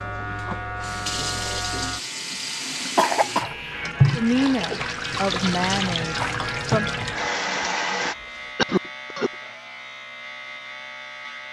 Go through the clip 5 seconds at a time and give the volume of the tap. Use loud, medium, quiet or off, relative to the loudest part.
loud, loud, off.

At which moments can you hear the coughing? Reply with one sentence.
You can hear the coughing from 3.0 to 3.9 s and from 8.6 to 9.3 s.